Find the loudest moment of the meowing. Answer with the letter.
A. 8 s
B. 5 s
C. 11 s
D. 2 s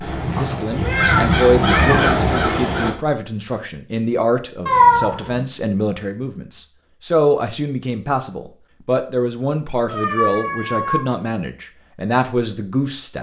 B.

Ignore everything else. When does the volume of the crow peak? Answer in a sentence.
The loudest moment of the crow is at 2 seconds.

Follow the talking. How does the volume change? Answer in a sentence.
The volume of the talking stays about the same.